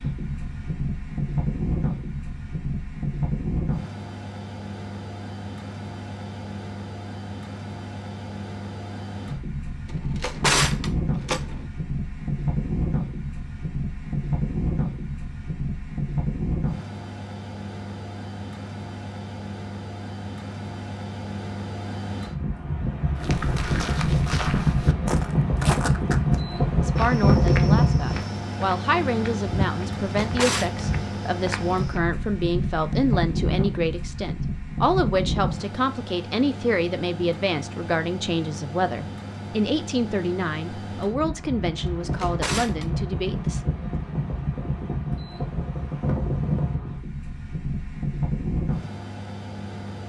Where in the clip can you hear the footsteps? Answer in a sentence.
You can hear the footsteps from 23.1 to 32.0 s.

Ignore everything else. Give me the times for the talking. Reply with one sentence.
The talking can be heard from 26.8 to 43.6 s.